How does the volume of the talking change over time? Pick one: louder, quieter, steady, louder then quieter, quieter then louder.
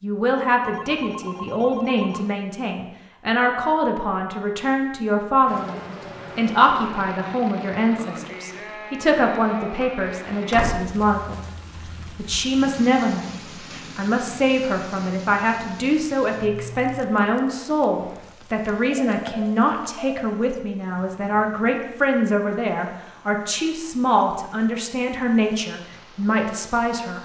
steady.